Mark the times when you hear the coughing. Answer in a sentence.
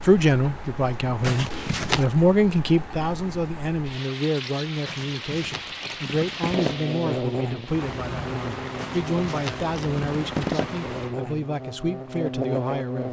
You can't hear the coughing here.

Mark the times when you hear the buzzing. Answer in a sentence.
You can hear the buzzing from 6.5 to 13.0 s.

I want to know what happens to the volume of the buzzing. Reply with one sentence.
The volume of the buzzing goes down, then up.